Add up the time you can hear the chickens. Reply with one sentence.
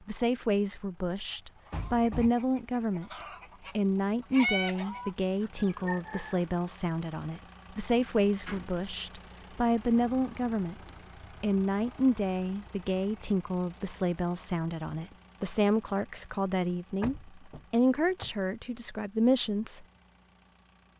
You can hear the chickens for 5 seconds altogether.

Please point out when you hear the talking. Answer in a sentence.
The talking can be heard from 0.1 to 3.1 s and from 3.8 to 19.9 s.